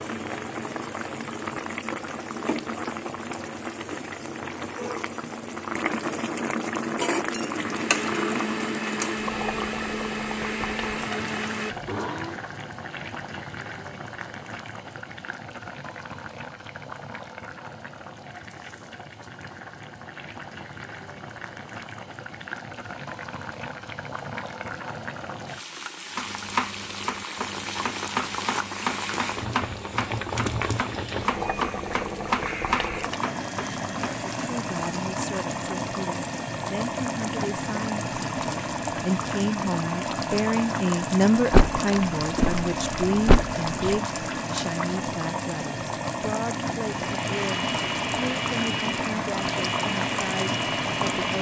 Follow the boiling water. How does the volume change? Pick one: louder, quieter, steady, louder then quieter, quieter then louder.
quieter then louder.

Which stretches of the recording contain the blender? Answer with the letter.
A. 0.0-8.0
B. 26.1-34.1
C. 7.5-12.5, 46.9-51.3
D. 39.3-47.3
C.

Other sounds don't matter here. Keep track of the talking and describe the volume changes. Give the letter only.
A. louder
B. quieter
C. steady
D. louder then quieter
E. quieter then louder
D.